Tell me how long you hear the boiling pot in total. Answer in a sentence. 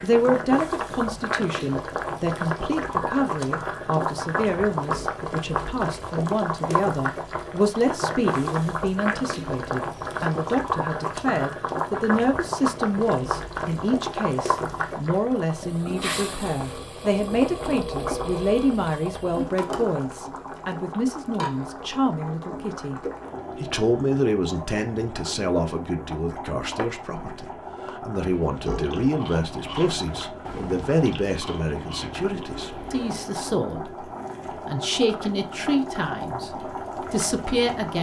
The boiling pot can be heard for 38 seconds in total.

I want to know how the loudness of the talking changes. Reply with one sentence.
The volume of the talking stays about the same.